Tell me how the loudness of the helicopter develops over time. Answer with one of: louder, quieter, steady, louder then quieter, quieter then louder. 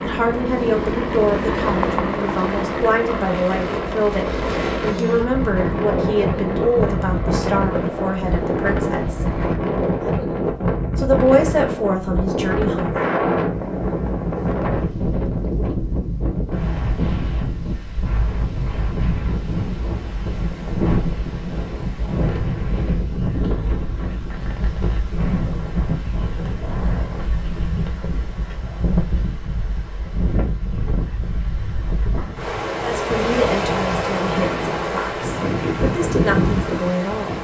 quieter.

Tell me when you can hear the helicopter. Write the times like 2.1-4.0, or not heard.
0.0-9.6.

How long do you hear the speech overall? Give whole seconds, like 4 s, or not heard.
16 s.